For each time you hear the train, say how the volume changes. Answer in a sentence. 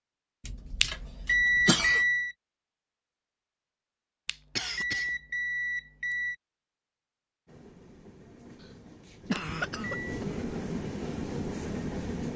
The train can be heard from 7.5 to 12.3 s, getting louder.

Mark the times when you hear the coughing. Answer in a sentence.
You can hear the coughing from 0.5 to 2.0 s, from 4.5 to 5.1 s and from 8.6 to 10.2 s.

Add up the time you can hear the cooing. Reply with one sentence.
You can't hear the cooing here.